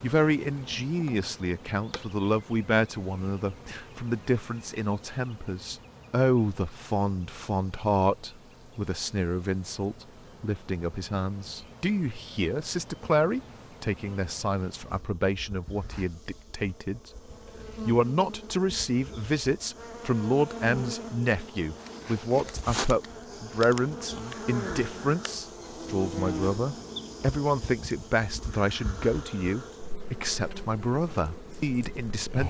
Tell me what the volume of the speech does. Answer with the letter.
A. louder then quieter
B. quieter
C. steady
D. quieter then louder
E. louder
C.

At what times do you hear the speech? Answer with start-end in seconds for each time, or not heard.
0.0-17.1, 17.9-32.4.